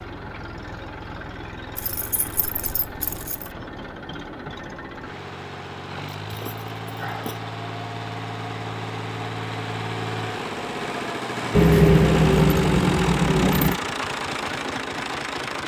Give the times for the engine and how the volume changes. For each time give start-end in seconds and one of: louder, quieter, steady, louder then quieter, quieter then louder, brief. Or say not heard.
0.0-15.6 louder.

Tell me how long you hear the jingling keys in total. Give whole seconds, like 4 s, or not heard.
5 s.